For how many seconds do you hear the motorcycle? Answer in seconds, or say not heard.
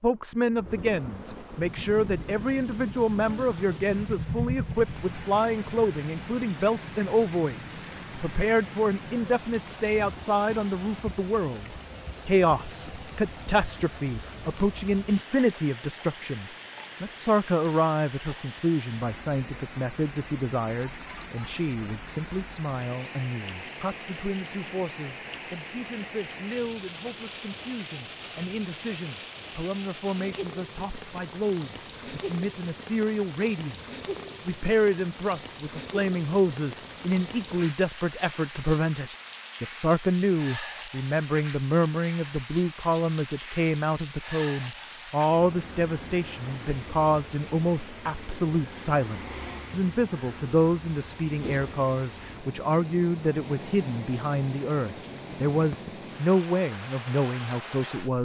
4 s.